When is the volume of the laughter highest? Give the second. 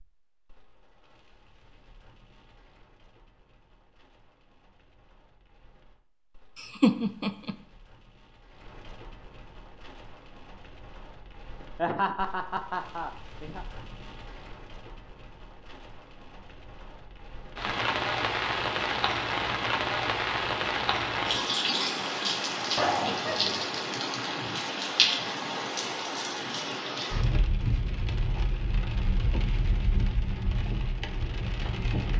7 s.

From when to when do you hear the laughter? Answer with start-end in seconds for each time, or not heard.
6.5-7.5, 11.8-13.7, 22.8-23.6.